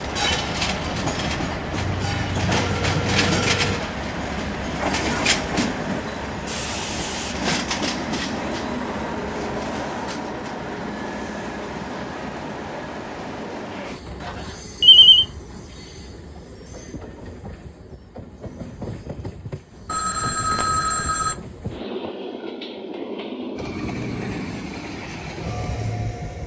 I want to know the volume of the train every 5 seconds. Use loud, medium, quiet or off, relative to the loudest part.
loud, loud, medium, quiet, medium, medium.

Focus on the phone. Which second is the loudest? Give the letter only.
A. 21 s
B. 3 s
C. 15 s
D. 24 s
C.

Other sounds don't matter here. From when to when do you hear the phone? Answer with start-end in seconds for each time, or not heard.
1.9-3.8, 14.2-15.2, 19.9-21.4.